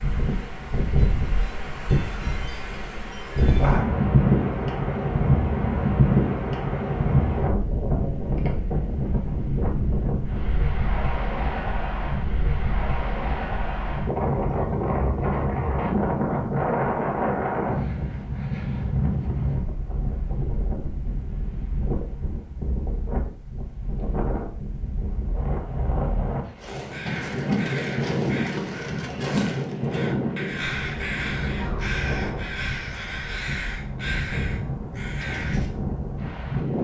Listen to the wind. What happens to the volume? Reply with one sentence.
The volume of the wind goes down.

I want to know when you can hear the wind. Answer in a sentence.
You can hear the wind from 0.0 to 36.7 s.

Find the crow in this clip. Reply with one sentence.
You can hear the crow from 26.6 to 35.7 s.